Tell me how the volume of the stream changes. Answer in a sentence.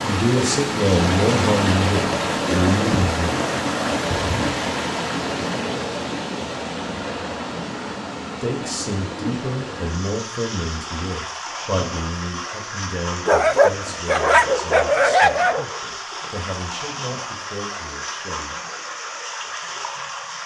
The loudness of the stream goes down.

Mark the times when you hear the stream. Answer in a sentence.
The stream can be heard from 0.0 to 20.4 s.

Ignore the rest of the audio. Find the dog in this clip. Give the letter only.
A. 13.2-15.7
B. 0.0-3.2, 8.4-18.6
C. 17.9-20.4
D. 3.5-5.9
A.